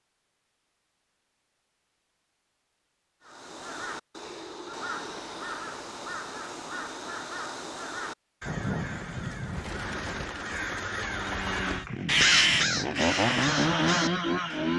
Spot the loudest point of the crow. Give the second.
12 s.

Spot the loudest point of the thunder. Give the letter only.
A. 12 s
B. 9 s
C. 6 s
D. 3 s
B.